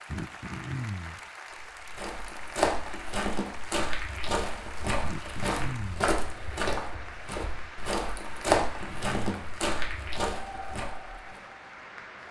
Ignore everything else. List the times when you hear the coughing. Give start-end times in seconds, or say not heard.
0.1-1.2, 5.0-6.2, 8.6-9.6.